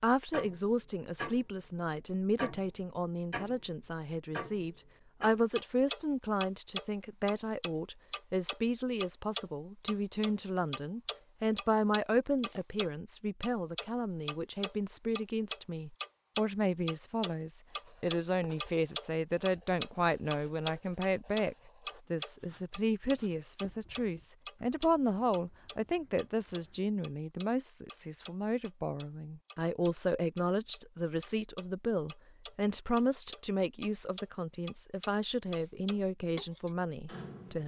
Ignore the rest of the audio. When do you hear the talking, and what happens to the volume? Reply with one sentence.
You can hear the talking from 0.0 to 37.6 s, at a steady volume.